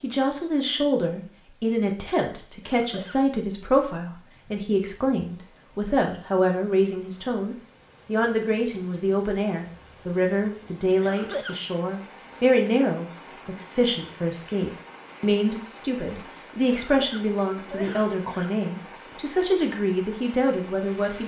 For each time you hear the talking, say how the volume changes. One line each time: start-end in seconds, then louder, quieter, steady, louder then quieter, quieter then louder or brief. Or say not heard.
0.0-21.2 steady.